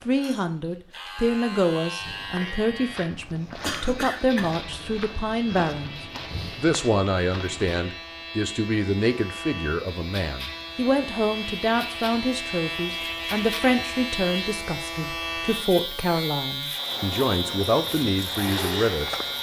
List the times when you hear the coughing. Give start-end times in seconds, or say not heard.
3.6-4.5.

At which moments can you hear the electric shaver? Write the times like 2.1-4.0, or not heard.
0.0-19.3.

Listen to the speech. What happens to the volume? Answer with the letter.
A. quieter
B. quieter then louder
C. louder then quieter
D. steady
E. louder
D.